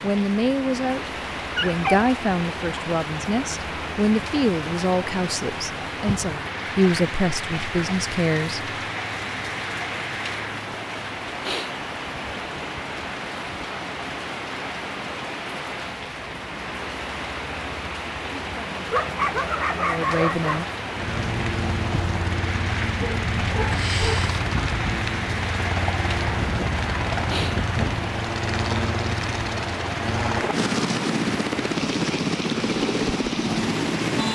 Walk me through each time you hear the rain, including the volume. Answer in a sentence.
The rain can be heard from 0.0 to 34.3 s, at a steady volume.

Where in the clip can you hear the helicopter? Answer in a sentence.
The helicopter can be heard from 20.9 to 34.3 s.